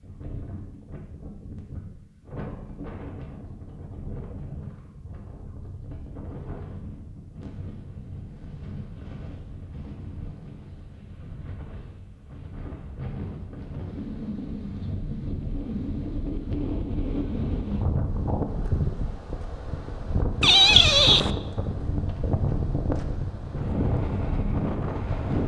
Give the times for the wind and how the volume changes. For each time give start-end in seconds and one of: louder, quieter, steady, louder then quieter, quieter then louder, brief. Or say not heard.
0.0-25.4 louder.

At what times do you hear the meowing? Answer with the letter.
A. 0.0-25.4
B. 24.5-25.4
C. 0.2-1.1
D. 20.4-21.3
D.